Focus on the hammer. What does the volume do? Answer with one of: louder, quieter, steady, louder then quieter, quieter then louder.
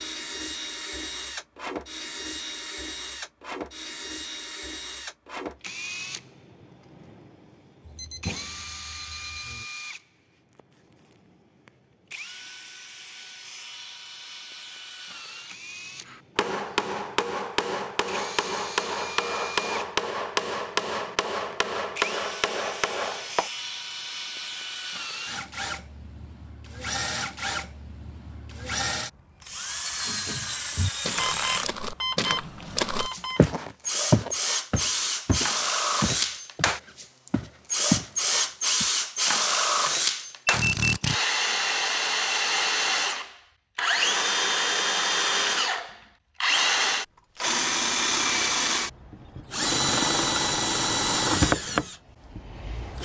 steady.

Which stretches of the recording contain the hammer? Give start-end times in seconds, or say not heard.
16.1-23.5.